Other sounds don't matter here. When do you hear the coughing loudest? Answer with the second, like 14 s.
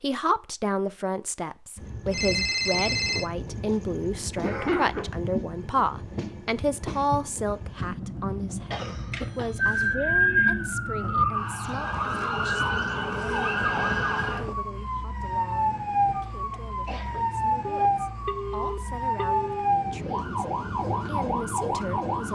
5 s.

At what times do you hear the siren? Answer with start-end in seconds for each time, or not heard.
9.6-22.3.